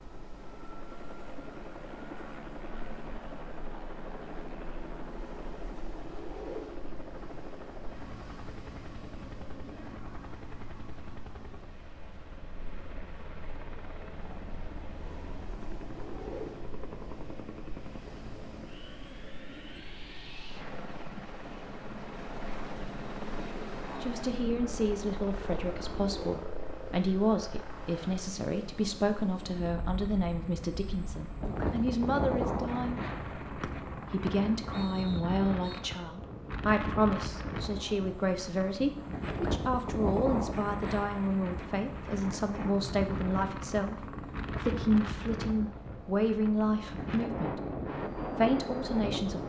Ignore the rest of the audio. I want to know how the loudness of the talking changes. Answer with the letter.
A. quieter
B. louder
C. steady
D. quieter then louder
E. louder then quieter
C.